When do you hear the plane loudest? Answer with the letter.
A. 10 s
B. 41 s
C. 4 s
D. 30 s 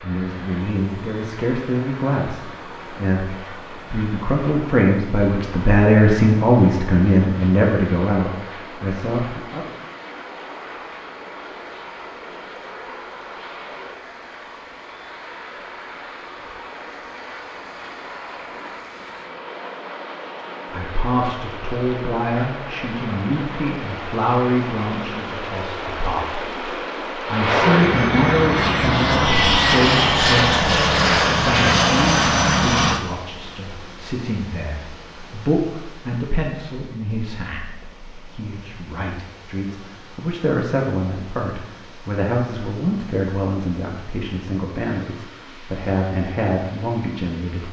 D.